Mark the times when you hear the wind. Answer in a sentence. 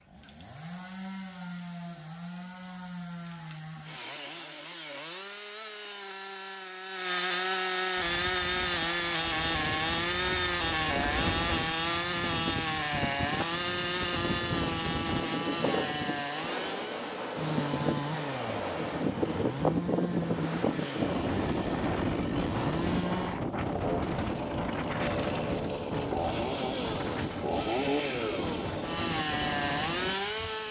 You can hear the wind from 8.0 to 30.6 s.